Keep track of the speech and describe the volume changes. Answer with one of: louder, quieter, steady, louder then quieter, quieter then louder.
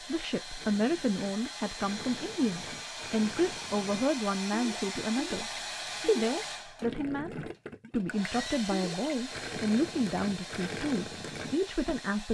steady.